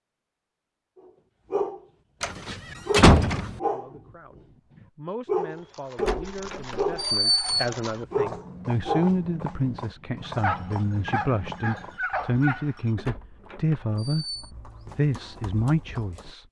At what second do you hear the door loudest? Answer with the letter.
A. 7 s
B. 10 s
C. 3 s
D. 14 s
C.